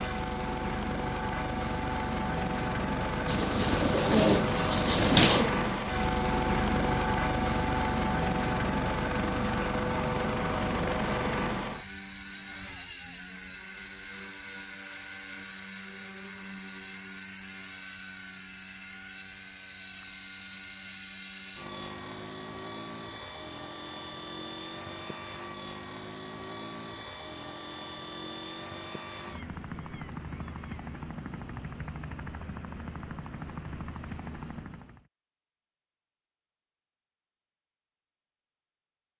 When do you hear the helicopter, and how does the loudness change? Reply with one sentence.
You can hear the helicopter from 0.0 to 35.0 s, getting quieter.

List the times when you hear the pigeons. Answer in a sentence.
You can hear the pigeons from 3.2 to 5.5 s.